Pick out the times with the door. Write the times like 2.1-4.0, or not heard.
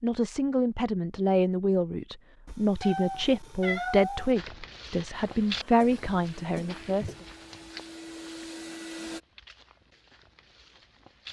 not heard.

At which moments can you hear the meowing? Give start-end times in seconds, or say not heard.
2.5-4.3.